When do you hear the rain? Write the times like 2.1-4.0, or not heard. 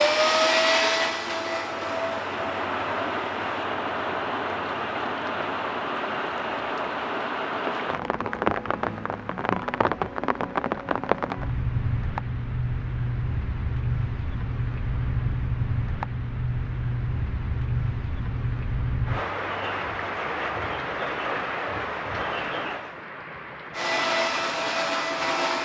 0.0-25.5.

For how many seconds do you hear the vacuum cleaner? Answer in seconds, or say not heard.
5 s.